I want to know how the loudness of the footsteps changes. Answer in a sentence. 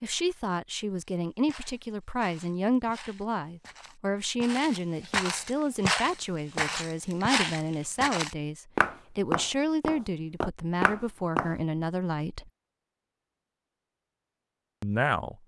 The volume of the footsteps goes up.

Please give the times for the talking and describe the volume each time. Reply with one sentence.
The talking can be heard from 0.0 to 12.5 s, at a steady volume; and briefly from 14.8 to 15.4 s.